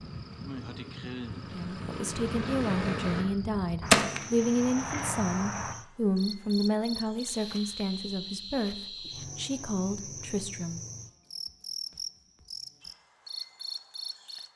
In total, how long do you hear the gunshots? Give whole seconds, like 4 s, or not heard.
2 s.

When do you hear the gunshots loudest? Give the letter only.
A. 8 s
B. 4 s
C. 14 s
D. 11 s
B.